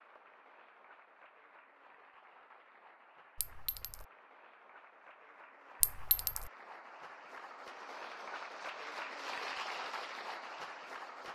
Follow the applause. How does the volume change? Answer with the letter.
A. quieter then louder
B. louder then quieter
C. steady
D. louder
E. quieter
D.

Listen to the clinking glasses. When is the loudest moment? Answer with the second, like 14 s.
6 s.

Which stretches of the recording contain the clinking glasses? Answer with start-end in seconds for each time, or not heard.
3.4-4.0, 5.8-6.5.